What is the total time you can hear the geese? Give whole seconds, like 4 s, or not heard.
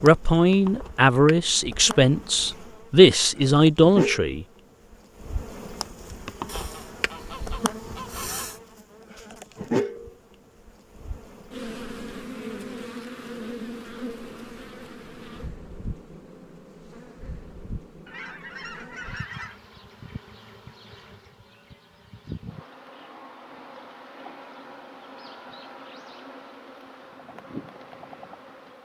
4 s.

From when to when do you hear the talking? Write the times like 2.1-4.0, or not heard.
0.0-4.5.